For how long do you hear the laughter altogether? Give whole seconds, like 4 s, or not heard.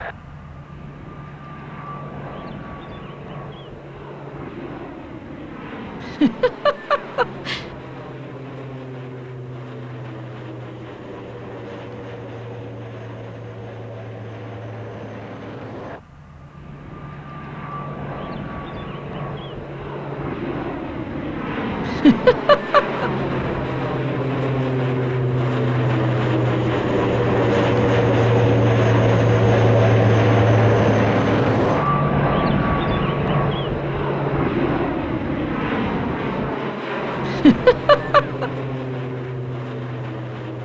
4 s.